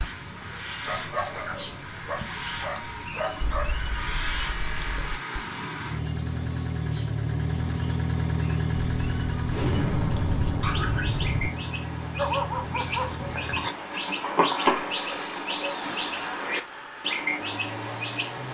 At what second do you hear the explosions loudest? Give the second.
10 s.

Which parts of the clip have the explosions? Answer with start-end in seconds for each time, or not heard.
9.5-11.5.